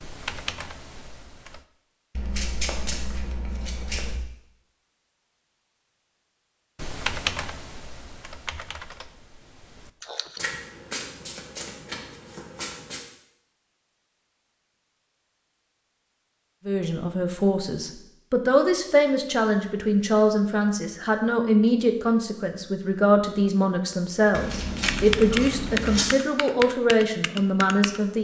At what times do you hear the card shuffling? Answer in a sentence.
The card shuffling can be heard from 2.1 to 4.2 s, from 10.3 to 13.1 s and from 24.3 to 26.1 s.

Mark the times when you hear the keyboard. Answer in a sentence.
The keyboard can be heard from 0.0 to 1.6 s, from 6.8 to 10.6 s and from 24.9 to 28.0 s.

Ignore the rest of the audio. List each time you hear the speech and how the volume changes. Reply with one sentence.
The speech can be heard from 16.6 to 28.1 s, at a steady volume.